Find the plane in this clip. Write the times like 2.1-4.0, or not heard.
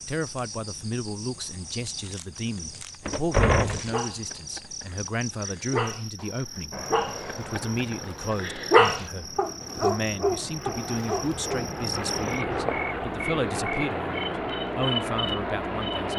6.7-16.1.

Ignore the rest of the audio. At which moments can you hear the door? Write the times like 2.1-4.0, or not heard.
3.0-3.9, 12.4-12.8.